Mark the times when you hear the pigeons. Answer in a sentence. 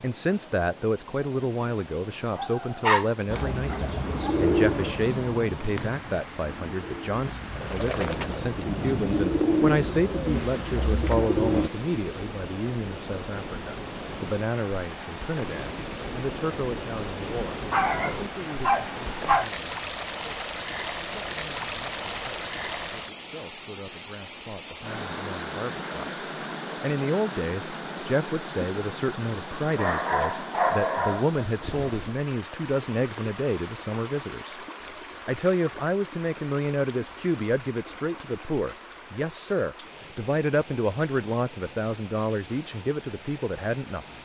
The pigeons can be heard from 3.2 to 11.7 s.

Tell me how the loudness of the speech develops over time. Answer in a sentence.
The loudness of the speech goes down, then up.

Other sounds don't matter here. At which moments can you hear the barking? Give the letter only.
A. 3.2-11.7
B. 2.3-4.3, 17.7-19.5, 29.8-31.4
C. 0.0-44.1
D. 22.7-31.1
B.